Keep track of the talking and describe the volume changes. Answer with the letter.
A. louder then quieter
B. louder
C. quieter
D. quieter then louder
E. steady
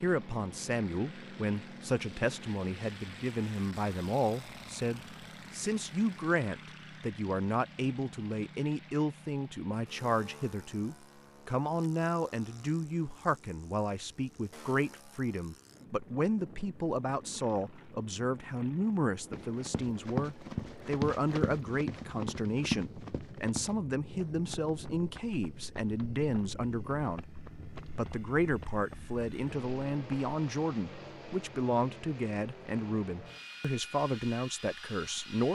E.